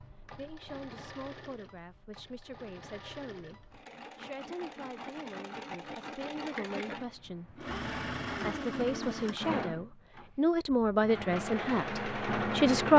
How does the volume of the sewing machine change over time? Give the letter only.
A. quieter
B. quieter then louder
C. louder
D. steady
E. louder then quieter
C.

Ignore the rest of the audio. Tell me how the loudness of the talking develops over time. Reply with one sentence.
The loudness of the talking goes up.